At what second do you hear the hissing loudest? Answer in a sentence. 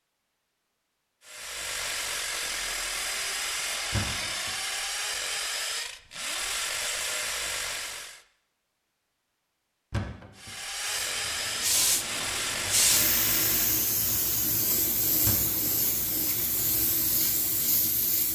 The volume of the hissing peaks at 13 seconds.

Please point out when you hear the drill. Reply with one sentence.
You can hear the drill from 1.2 to 8.2 s and from 10.3 to 13.8 s.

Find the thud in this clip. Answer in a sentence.
You can hear the thud from 3.9 to 4.5 s, from 9.9 to 10.5 s and from 15.2 to 15.6 s.